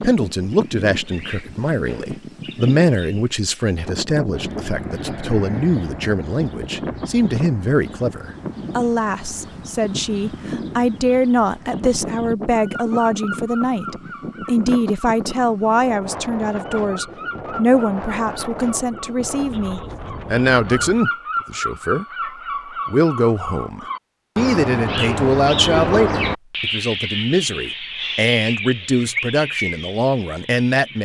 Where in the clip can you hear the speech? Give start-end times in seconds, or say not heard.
0.0-22.1, 22.9-31.0.